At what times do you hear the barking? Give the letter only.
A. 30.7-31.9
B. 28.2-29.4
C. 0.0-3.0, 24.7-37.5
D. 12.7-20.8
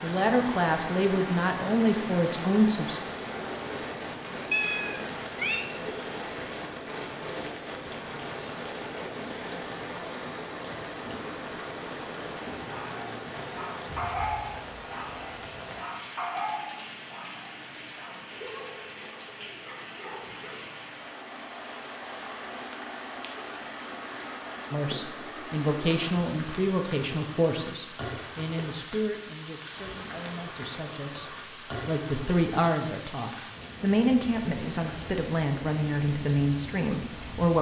D.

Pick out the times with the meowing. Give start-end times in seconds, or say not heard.
4.5-5.7.